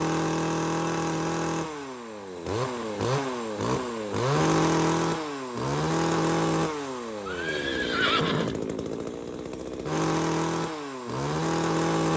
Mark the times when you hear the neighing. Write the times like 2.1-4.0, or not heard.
7.2-8.6.